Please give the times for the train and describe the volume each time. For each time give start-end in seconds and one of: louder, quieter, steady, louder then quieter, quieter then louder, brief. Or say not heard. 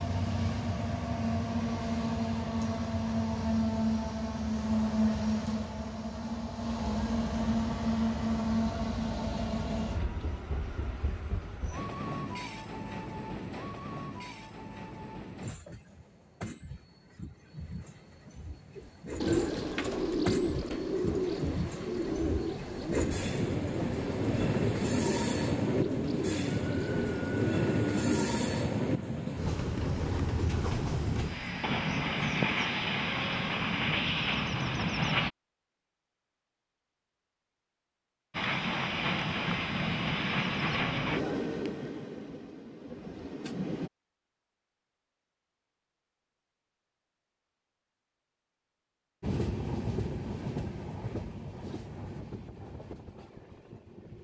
0.0-35.3 quieter then louder
38.3-43.9 quieter
49.2-54.1 quieter.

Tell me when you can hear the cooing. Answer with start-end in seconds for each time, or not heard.
18.8-28.4.